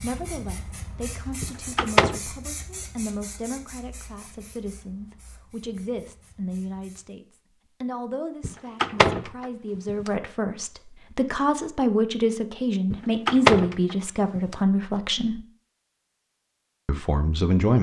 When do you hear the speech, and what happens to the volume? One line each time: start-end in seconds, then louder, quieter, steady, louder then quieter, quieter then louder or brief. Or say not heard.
0.0-15.4 louder
16.9-17.7 brief.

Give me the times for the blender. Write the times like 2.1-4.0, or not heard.
not heard.